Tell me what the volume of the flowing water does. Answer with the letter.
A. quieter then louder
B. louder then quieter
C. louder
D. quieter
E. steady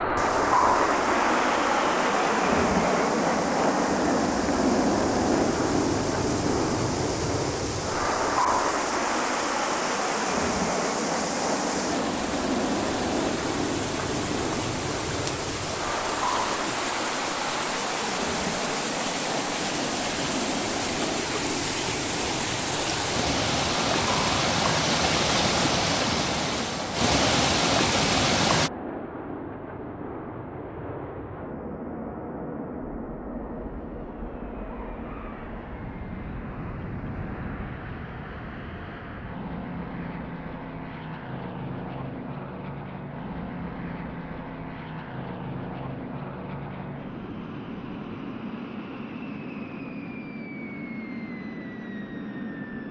C.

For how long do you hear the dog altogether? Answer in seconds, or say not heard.
not heard.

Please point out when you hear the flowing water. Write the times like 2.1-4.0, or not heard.
0.1-28.7.